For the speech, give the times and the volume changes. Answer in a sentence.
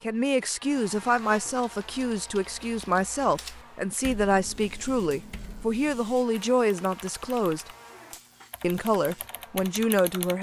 You can hear the speech from 0.0 to 7.7 s, at a steady volume; and briefly from 8.6 to 10.3 s.